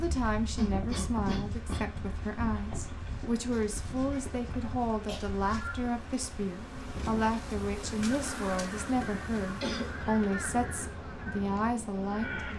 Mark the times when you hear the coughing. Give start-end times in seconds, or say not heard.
0.6-1.9, 4.5-5.2, 9.6-10.1.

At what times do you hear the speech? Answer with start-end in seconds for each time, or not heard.
0.0-12.5.